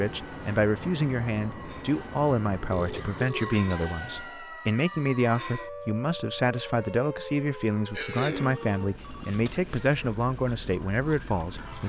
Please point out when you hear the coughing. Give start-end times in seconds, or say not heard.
2.8-3.9, 8.0-8.6.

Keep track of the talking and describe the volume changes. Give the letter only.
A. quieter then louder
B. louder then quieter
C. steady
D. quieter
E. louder
C.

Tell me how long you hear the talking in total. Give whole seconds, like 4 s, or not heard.
12 s.